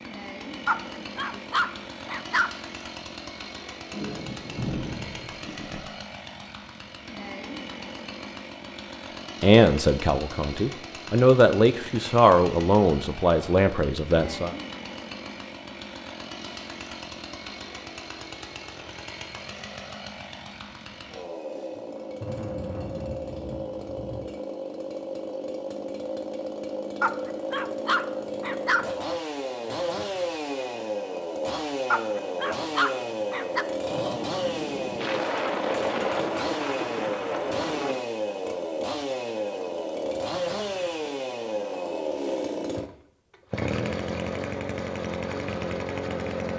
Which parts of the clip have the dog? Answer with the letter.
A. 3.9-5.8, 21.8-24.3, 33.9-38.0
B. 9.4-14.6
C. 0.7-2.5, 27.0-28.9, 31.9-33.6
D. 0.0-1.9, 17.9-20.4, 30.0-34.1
C.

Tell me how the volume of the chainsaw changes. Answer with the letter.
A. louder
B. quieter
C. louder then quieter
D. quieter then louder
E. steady
A.